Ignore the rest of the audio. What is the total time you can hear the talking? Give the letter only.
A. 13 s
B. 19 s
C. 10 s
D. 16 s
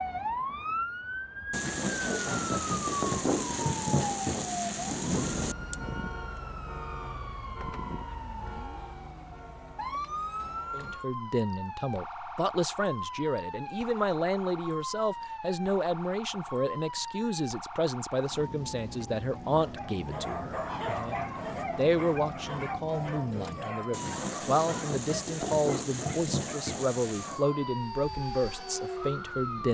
B.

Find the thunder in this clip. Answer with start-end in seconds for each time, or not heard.
1.5-5.5, 23.9-27.4.